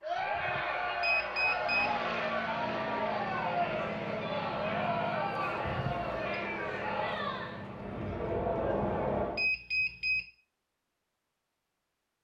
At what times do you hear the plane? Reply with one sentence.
The plane can be heard from 1.6 to 9.5 s.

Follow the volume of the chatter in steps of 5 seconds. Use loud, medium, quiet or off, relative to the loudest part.
loud, loud, off.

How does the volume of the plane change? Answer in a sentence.
The volume of the plane stays about the same.